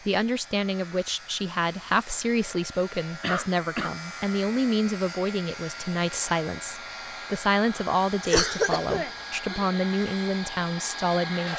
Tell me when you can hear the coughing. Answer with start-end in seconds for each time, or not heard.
3.2-4.0, 8.2-9.8.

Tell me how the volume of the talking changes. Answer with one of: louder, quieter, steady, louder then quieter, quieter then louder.
steady.